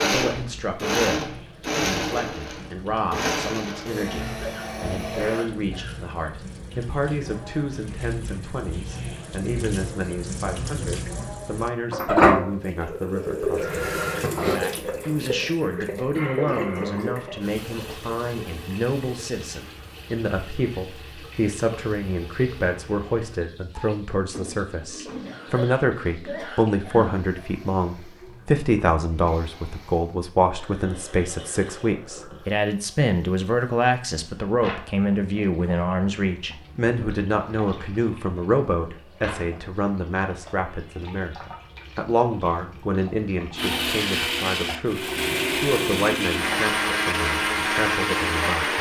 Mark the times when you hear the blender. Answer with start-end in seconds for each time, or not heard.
0.0-5.5, 43.5-48.7.